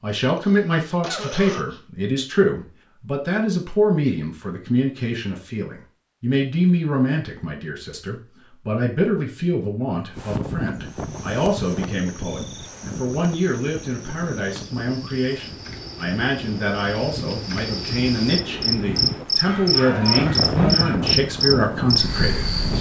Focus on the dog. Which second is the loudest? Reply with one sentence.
The volume of the dog peaks at 21 seconds.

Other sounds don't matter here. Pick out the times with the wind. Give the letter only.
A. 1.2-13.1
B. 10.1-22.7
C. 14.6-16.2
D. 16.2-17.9
B.